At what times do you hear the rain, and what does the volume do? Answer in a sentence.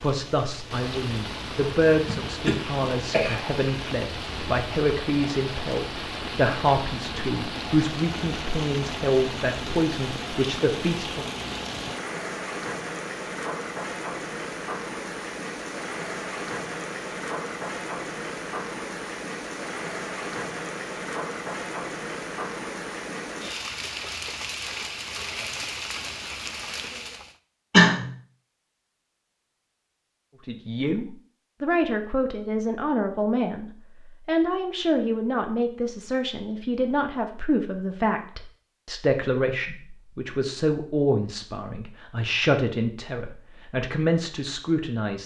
The rain can be heard from 0.0 to 27.4 s, at a steady volume.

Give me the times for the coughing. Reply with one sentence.
You can hear the coughing from 2.0 to 3.4 s and from 27.7 to 28.1 s.